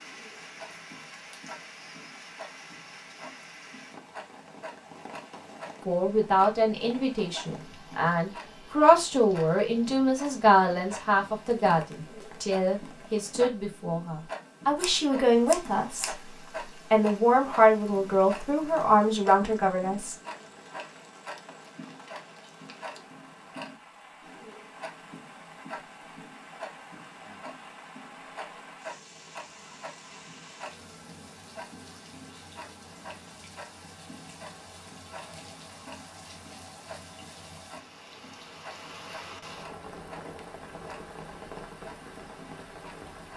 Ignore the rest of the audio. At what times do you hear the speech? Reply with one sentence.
The speech can be heard from 5.8 to 16.1 s and from 16.9 to 20.1 s.